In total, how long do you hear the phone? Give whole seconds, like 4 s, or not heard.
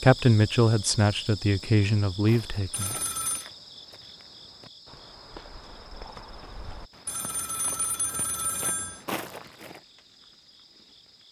3 s.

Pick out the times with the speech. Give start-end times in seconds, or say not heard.
0.0-3.0.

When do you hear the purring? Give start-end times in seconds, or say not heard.
not heard.